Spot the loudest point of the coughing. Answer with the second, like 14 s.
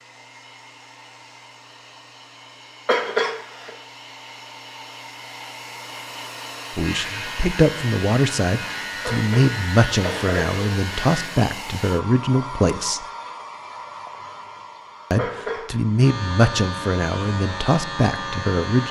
3 s.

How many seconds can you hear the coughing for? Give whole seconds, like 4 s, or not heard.
3 s.